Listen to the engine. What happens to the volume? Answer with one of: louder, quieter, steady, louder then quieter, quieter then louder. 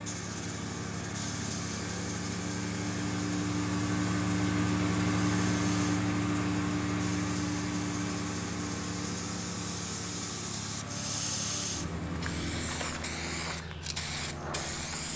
louder then quieter.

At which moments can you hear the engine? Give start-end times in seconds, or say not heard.
0.0-12.7.